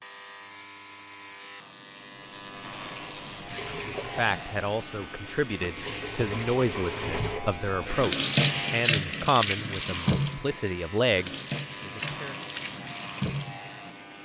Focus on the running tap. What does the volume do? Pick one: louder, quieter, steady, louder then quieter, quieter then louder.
louder then quieter.